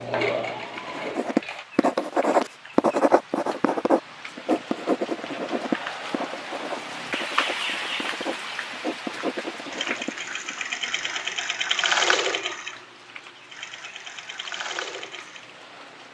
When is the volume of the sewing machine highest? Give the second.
12 s.